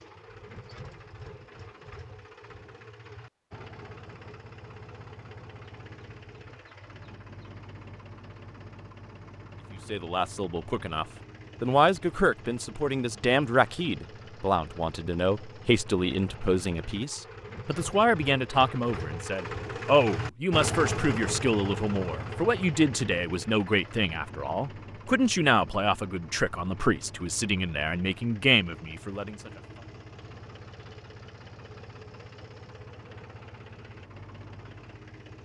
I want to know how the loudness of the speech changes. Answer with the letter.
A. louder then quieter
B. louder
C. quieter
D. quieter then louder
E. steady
E.